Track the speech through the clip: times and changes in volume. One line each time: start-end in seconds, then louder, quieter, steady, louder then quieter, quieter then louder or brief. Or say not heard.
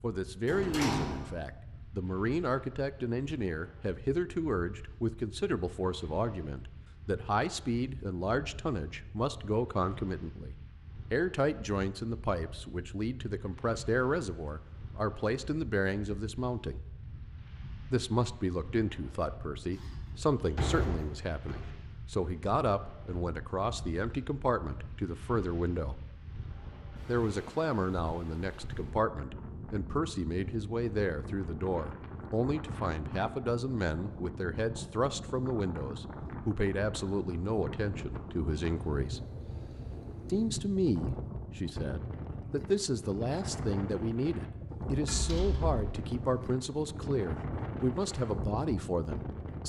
0.0-16.9 steady
17.9-26.0 steady
27.1-39.2 steady
40.2-49.6 steady.